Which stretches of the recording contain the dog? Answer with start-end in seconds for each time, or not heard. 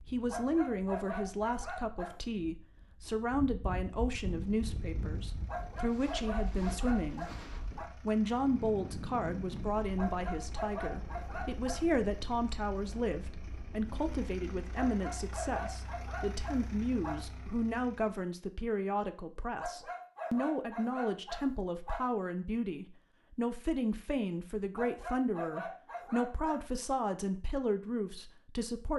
0.2-2.1, 5.5-7.9, 9.9-11.8, 14.8-17.2, 19.6-22.1, 24.8-26.6.